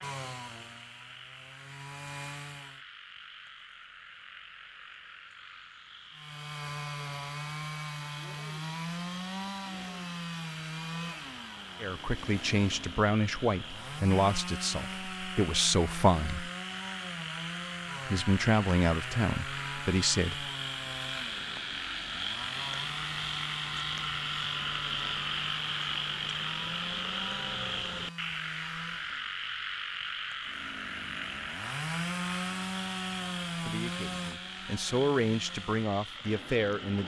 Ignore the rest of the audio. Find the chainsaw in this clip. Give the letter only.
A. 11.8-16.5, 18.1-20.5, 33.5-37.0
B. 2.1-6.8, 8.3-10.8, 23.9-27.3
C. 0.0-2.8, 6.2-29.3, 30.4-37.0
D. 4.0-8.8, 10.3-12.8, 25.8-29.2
C.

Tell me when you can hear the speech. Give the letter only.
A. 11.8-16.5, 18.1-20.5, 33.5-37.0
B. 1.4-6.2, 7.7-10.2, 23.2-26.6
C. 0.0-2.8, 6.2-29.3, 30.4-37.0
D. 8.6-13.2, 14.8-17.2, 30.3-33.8
A.